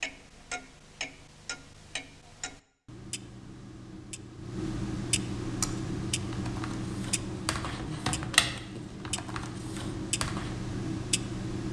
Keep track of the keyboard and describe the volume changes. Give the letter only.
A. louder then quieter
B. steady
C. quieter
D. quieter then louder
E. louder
A.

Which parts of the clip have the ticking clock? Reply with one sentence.
The ticking clock can be heard from 0.0 to 11.6 s.